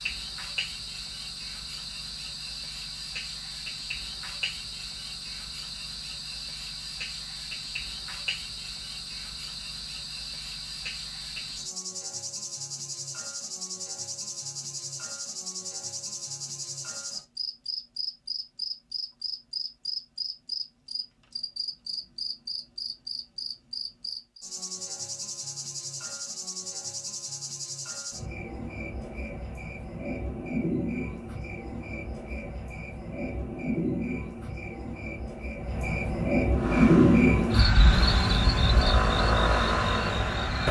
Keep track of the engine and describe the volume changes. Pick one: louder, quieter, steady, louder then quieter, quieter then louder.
louder.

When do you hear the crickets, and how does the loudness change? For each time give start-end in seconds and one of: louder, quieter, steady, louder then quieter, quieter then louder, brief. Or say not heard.
0.0-40.6 louder.